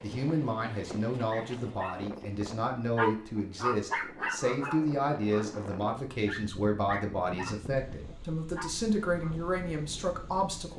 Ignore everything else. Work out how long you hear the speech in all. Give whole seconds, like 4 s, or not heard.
11 s.